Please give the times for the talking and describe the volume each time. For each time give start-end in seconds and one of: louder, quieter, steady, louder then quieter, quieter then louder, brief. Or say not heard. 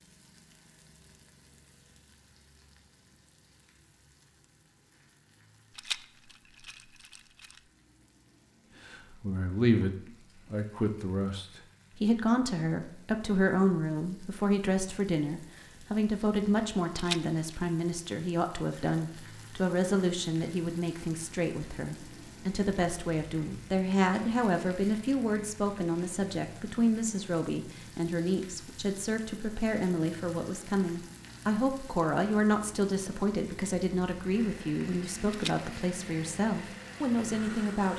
8.8-37.9 steady.